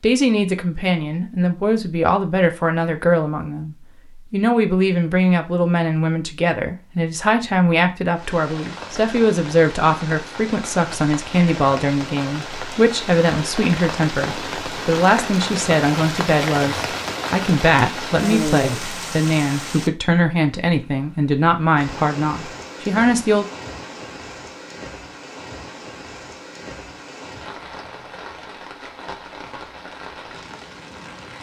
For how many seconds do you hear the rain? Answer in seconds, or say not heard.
23 s.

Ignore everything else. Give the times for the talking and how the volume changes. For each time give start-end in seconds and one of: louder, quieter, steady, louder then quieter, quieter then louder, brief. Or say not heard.
0.0-23.4 steady.